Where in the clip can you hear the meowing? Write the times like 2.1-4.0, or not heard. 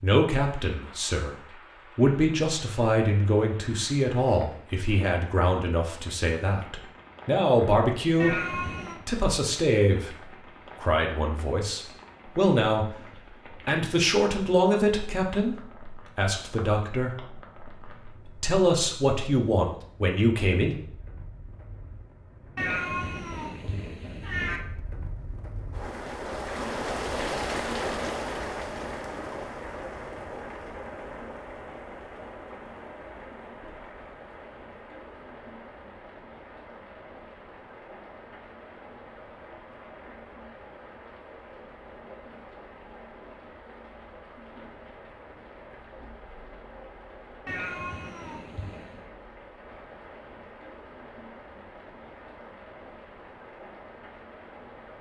8.2-9.0, 22.6-24.6, 47.5-49.0.